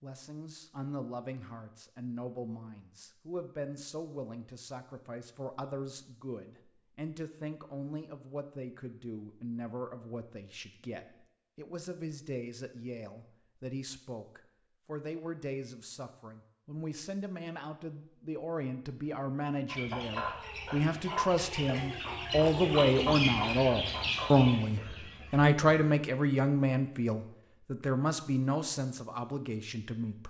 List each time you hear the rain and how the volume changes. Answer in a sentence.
You can't hear the rain here.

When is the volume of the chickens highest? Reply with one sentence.
The volume of the chickens peaks at 23 seconds.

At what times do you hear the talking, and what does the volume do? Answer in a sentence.
You can hear the talking from 0.0 to 30.2 s, getting louder.